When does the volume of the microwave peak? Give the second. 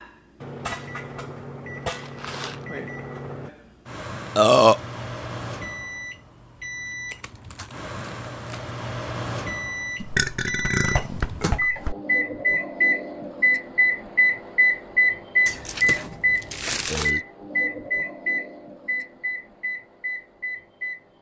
15 s.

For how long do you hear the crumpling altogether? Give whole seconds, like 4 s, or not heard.
4 s.